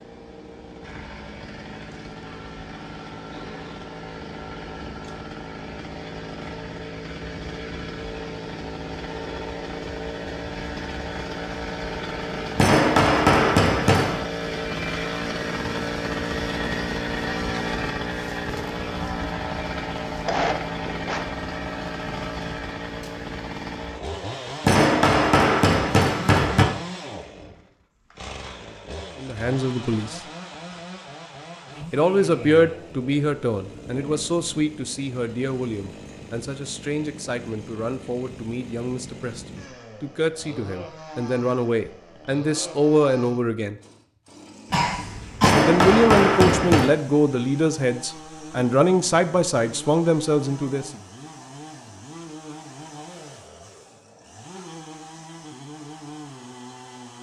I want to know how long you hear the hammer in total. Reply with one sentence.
The hammer can be heard for 5 seconds in total.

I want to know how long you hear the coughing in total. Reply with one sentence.
The coughing can be heard for 2 seconds in total.